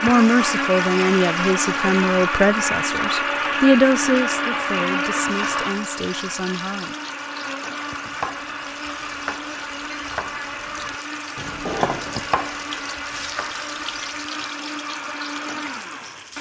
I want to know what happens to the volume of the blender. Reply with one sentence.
The volume of the blender goes down.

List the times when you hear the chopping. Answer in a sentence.
The chopping can be heard from 8.0 to 14.2 s.